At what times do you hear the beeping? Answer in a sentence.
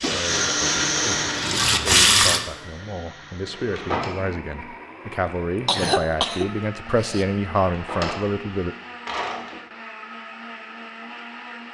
You can't hear the beeping here.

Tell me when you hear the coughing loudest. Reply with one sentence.
The loudest moment of the coughing is at 6 seconds.